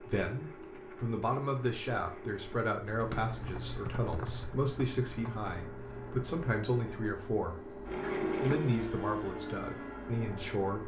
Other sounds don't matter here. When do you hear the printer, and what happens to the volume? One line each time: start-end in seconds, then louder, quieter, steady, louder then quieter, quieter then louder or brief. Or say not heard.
0.0-10.8 louder.